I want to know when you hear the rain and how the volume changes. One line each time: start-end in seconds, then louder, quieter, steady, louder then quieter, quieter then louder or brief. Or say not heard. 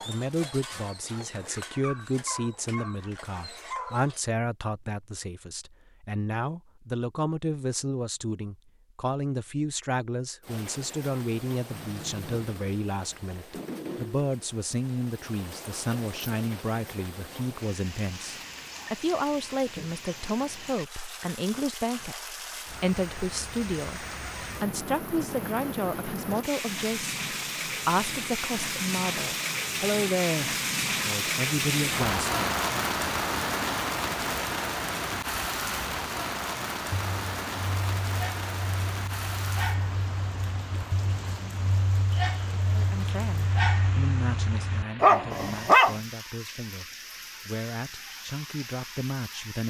10.4-49.6 louder then quieter.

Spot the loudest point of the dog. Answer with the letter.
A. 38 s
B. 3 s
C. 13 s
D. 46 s
D.